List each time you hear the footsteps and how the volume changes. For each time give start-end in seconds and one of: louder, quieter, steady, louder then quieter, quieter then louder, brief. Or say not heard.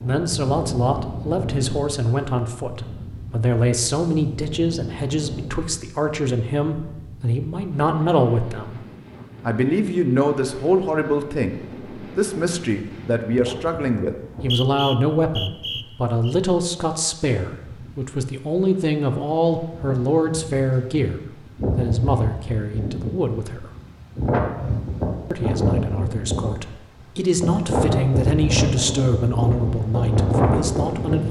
not heard.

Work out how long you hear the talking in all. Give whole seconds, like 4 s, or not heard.
29 s.